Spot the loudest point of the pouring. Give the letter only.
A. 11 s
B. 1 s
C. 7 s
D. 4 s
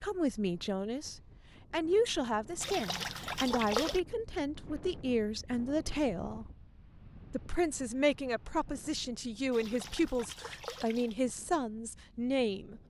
D.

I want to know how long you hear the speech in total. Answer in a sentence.
You can hear the speech for 12 seconds altogether.